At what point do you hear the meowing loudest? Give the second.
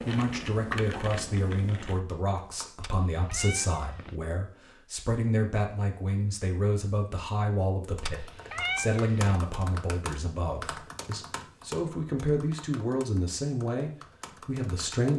9 s.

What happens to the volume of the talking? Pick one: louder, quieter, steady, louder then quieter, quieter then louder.
steady.